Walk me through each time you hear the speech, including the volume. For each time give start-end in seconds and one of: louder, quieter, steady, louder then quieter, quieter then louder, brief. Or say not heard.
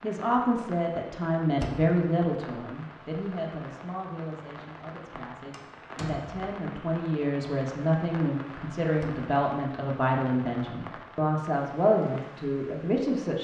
0.0-13.3 quieter then louder.